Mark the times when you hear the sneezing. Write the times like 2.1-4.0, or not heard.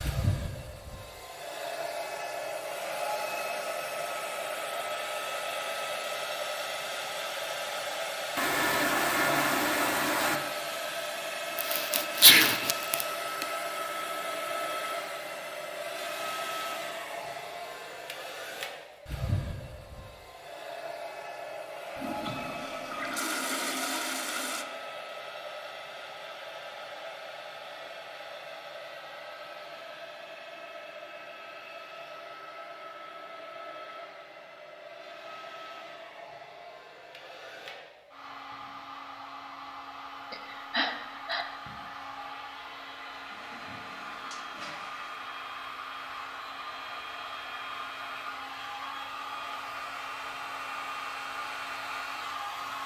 11.6-13.4, 40.3-41.5.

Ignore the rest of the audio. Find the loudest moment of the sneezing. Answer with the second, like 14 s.
12 s.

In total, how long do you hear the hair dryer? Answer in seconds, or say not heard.
53 s.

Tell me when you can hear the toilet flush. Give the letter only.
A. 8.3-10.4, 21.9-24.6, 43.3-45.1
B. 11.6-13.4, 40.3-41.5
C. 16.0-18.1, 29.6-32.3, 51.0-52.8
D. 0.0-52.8
A.